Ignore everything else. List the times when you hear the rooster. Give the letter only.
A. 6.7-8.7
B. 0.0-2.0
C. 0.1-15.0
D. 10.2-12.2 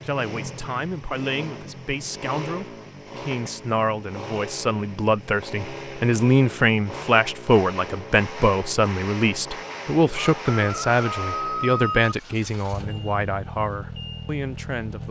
D.